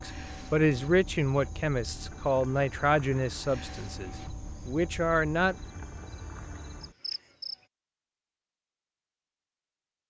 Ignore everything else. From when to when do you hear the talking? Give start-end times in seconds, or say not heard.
0.0-5.5.